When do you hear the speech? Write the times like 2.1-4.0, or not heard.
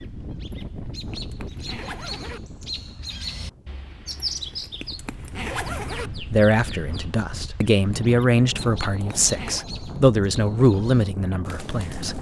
6.2-12.1.